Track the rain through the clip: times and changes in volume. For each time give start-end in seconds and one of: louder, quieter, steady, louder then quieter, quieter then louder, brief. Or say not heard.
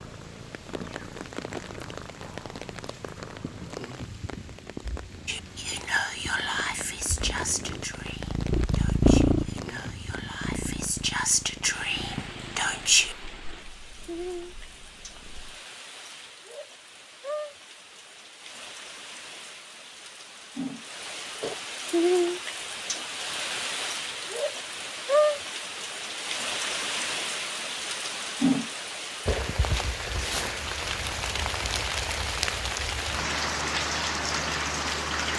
0.0-35.3 louder.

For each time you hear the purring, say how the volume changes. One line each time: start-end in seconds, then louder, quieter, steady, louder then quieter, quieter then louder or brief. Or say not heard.
0.0-15.6 louder then quieter.